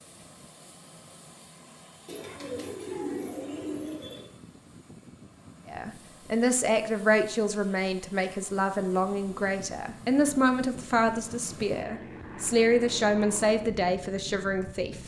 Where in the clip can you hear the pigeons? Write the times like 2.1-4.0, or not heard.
2.0-4.3.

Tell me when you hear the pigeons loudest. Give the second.
3 s.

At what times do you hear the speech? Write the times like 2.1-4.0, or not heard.
5.7-15.0.